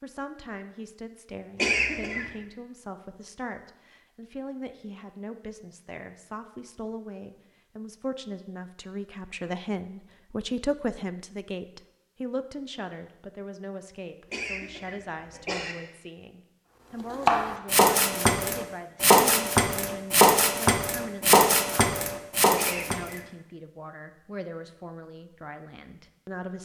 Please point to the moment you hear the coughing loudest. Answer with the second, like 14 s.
2 s.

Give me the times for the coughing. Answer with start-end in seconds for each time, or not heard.
1.6-2.3, 14.3-15.8, 22.6-23.3.